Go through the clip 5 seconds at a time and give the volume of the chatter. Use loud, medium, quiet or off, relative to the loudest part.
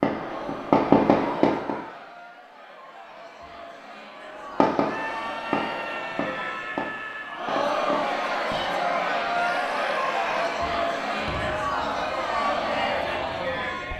quiet, loud, loud.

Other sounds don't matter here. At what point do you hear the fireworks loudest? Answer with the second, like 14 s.
1 s.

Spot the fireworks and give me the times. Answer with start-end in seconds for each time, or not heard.
0.0-1.8, 4.6-8.6, 11.2-13.9.